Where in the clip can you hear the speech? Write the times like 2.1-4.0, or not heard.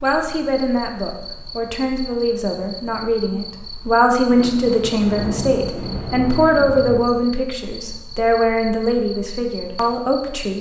0.0-10.5.